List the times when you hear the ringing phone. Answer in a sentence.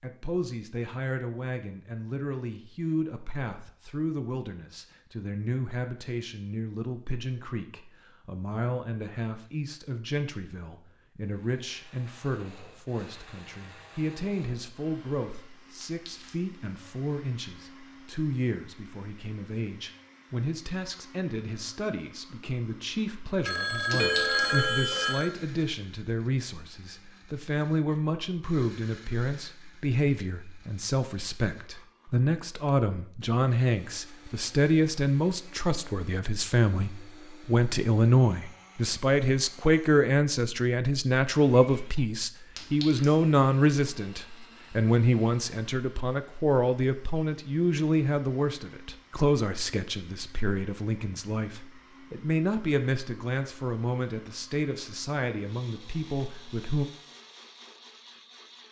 The ringing phone can be heard from 23.4 to 25.3 s.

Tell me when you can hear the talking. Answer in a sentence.
The talking can be heard from 0.0 to 56.9 s.